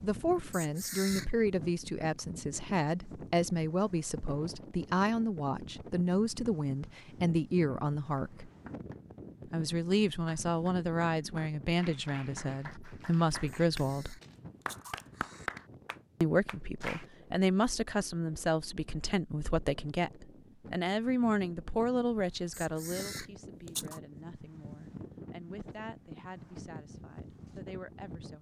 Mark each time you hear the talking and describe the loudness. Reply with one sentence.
The talking can be heard from 0.0 to 8.5 s, at a steady volume; from 9.4 to 14.2 s, getting quieter then louder; and from 16.2 to 28.3 s, getting quieter.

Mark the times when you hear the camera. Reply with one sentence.
You can hear the camera from 0.5 to 1.4 s, from 13.4 to 15.5 s and from 22.5 to 24.0 s.